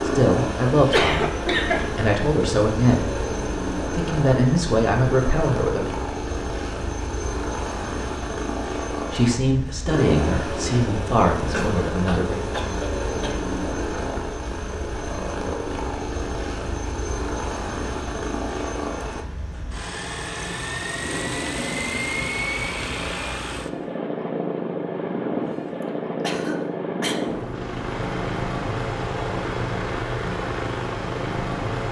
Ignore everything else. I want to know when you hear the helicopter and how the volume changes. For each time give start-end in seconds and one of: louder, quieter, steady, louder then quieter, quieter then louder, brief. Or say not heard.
0.0-31.8 steady.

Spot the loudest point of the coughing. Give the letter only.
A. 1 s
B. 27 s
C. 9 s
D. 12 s
A.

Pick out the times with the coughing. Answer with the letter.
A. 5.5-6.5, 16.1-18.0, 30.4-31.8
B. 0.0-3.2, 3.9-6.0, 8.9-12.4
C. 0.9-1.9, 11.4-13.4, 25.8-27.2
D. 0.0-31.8
C.